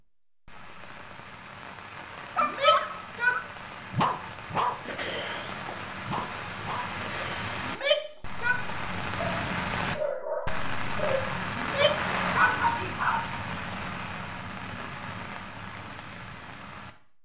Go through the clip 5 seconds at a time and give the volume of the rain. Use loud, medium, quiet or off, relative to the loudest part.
medium, loud, loud, medium.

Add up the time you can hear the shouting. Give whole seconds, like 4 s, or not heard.
3 s.